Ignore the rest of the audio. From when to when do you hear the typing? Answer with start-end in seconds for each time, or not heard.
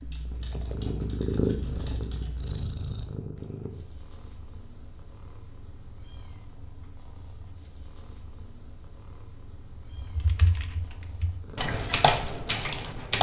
0.0-2.6, 9.9-13.1.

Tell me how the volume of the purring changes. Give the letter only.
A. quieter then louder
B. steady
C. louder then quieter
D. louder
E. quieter
E.